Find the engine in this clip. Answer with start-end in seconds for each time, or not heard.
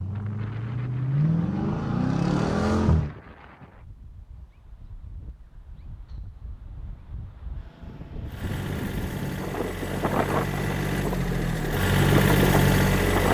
0.0-3.1, 8.2-13.3.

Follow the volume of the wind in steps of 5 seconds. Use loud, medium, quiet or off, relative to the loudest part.
quiet, medium, loud.